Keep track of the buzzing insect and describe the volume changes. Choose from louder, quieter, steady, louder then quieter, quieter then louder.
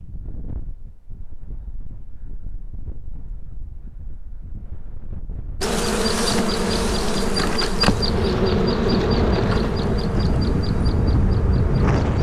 quieter.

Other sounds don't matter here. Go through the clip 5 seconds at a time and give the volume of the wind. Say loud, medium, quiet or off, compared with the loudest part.
quiet, medium, loud.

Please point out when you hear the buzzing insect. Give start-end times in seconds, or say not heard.
5.6-12.1.